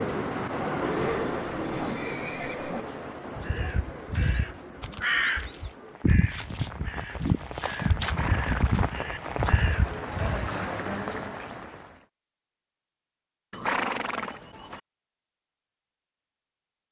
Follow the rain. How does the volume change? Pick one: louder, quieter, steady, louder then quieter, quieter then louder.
quieter then louder.